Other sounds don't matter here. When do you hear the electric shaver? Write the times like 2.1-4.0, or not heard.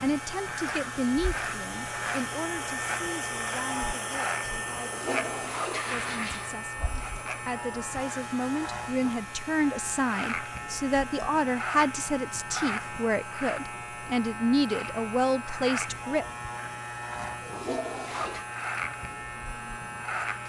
0.0-20.4.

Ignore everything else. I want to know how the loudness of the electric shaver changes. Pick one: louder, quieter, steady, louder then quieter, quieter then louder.
steady.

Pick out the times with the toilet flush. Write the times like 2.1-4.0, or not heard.
4.8-6.5, 17.1-18.4.